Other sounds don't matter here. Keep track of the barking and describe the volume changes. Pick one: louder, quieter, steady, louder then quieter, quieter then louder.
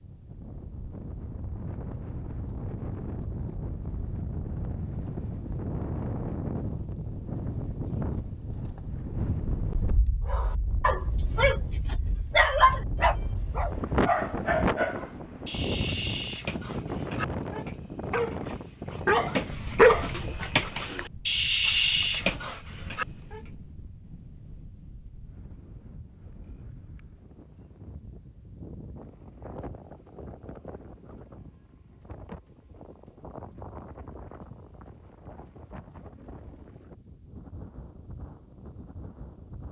quieter then louder.